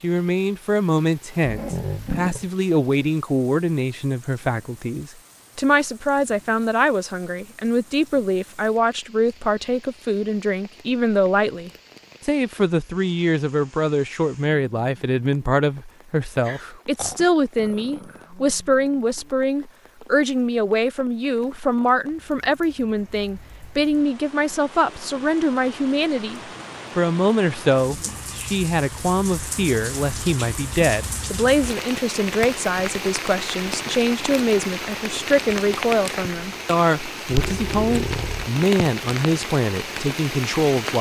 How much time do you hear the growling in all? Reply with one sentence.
You can hear the growling for 4 seconds altogether.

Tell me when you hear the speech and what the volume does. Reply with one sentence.
The speech can be heard from 0.0 to 40.9 s, at a steady volume.